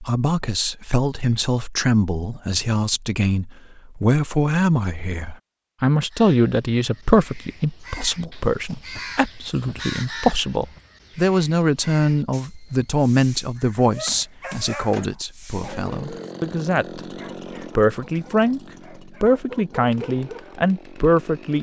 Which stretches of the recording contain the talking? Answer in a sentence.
You can hear the talking from 0.0 to 17.0 s, from 17.8 to 18.6 s and from 19.2 to 21.5 s.